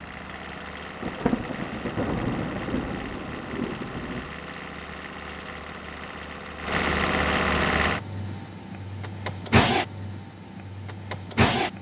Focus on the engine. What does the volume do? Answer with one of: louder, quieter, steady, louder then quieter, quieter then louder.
louder.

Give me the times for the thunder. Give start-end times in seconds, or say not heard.
1.0-4.3.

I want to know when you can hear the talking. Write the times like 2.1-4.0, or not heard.
not heard.